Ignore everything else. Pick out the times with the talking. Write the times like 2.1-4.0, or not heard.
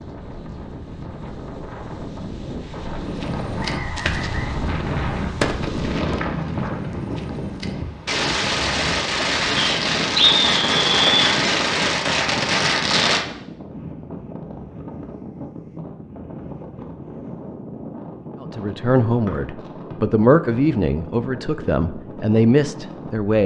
18.4-23.4.